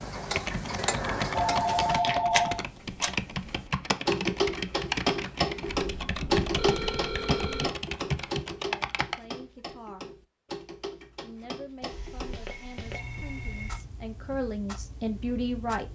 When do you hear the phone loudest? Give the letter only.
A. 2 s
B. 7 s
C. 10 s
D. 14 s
A.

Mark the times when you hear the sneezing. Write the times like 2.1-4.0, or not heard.
not heard.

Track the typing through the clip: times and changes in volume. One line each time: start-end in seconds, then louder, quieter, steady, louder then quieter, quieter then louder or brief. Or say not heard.
0.3-9.2 steady.